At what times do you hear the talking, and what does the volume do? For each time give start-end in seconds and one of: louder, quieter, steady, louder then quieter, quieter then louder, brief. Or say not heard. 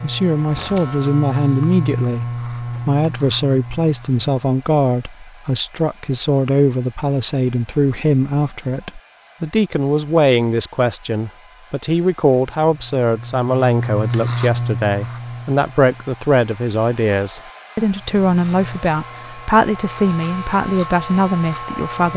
0.0-22.1 steady.